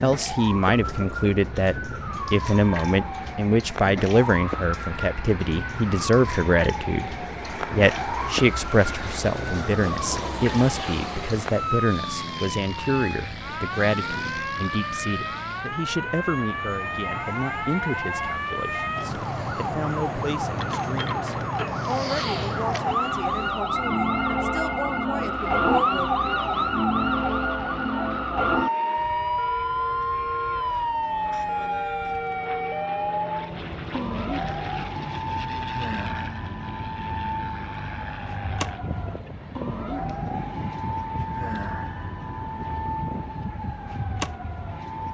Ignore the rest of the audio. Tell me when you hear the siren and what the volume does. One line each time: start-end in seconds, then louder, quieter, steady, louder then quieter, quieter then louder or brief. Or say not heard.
0.0-45.0 louder then quieter.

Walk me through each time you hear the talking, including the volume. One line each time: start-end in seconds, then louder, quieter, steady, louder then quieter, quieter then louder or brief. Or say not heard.
0.0-26.2 quieter.